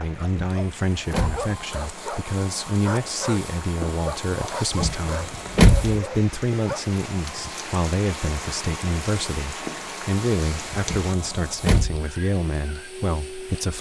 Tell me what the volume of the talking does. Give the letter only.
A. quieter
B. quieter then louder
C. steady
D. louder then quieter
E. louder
C.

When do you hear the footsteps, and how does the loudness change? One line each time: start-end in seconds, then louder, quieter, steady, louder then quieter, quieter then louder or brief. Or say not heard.
not heard.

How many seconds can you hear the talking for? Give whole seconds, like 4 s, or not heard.
14 s.